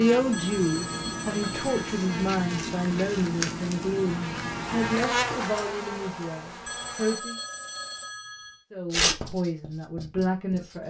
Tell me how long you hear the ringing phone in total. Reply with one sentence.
The ringing phone can be heard for 4 seconds in total.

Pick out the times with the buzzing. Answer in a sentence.
You can hear the buzzing from 0.0 to 7.2 s.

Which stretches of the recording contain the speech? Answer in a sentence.
You can hear the speech from 0.0 to 7.3 s and from 8.7 to 10.8 s.